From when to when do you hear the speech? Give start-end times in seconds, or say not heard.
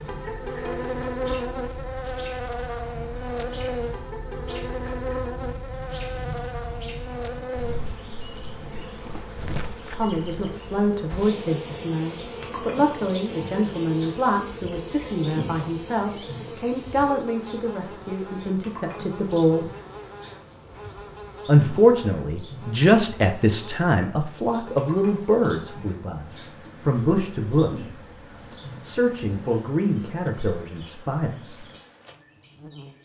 9.9-19.7, 21.4-28.0, 28.8-31.6.